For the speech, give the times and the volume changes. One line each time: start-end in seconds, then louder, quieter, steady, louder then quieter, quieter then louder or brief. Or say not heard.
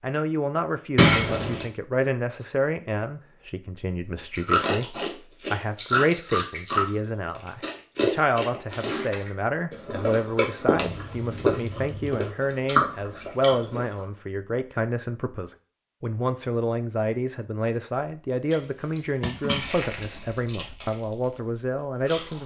0.0-22.4 steady.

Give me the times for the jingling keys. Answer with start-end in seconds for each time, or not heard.
0.9-1.6, 10.7-12.2, 18.5-20.2.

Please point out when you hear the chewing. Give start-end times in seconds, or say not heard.
4.3-14.0, 19.6-22.4.